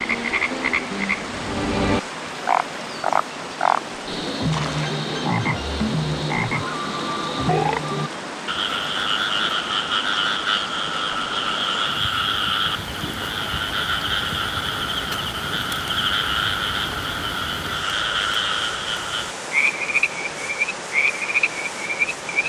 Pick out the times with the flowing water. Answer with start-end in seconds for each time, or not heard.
0.0-22.4.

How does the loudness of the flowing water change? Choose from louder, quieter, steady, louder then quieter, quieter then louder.
steady.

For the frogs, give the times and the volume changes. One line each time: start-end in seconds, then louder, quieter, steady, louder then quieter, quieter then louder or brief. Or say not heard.
0.0-22.4 steady.